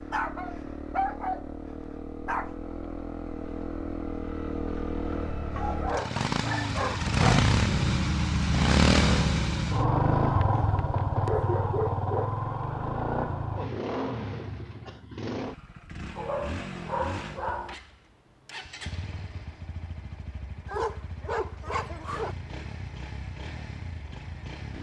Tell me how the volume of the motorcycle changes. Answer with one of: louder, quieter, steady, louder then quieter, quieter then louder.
louder then quieter.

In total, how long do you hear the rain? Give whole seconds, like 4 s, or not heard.
not heard.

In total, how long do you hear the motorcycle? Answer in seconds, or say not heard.
25 s.